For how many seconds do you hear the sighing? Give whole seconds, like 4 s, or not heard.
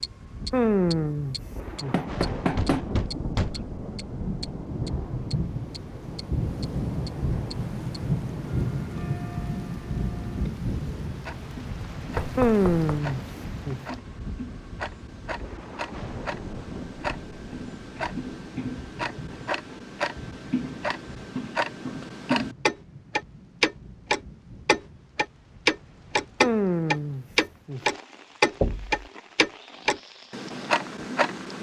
4 s.